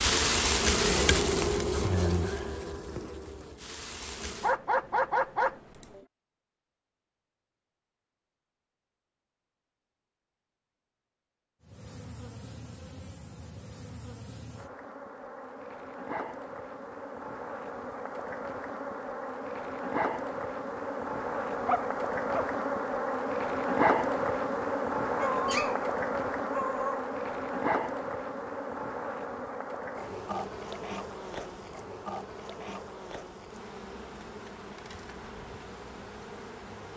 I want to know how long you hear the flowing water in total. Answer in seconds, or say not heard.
not heard.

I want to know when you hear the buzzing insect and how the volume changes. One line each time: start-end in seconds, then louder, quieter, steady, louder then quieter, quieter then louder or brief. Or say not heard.
0.0-4.5 quieter
11.6-36.9 louder then quieter.